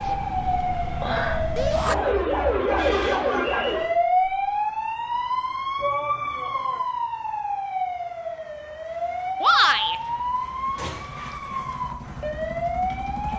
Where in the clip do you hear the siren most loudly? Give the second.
4 s.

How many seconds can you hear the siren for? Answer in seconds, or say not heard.
13 s.